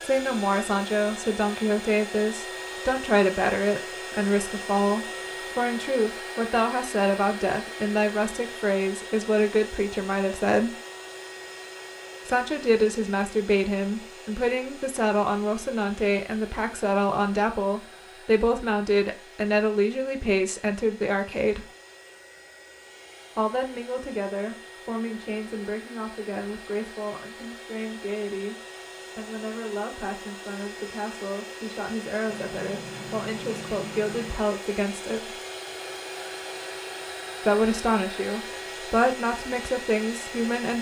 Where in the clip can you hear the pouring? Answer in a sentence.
The pouring can be heard from 32.3 to 34.4 s.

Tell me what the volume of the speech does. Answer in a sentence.
The volume of the speech goes down, then up.